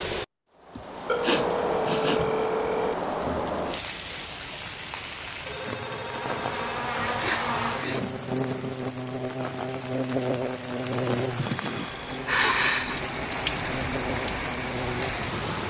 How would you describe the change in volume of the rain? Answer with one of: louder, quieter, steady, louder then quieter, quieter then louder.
quieter then louder.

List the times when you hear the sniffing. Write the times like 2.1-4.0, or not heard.
0.8-2.2, 7.0-8.8, 11.3-13.1.